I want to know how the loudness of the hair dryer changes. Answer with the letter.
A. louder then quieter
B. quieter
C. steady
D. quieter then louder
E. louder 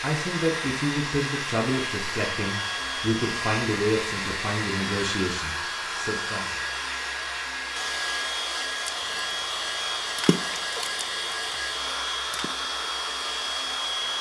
C.